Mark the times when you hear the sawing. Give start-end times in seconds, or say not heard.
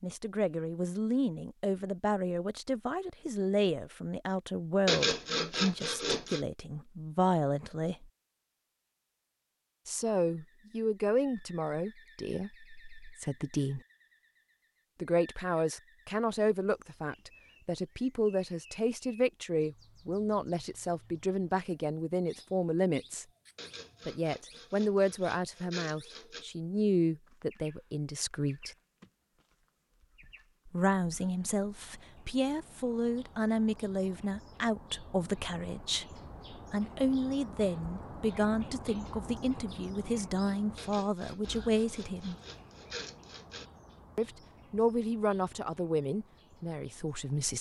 4.8-6.5, 23.6-26.4, 40.8-43.6.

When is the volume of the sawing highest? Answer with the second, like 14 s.
5 s.